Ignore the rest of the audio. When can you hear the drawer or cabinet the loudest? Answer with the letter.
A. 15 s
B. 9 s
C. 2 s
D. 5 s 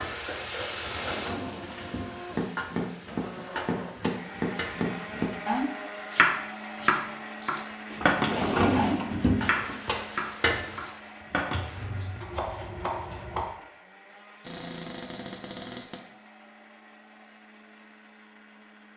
B.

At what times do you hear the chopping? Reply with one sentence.
The chopping can be heard from 2.3 to 13.5 s.